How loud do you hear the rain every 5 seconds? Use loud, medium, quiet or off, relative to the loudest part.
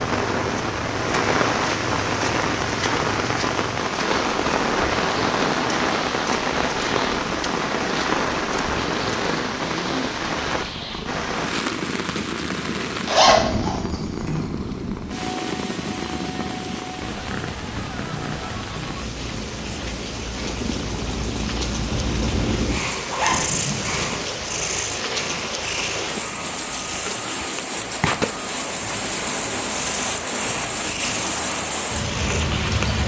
loud, loud, medium, medium, medium, medium, loud.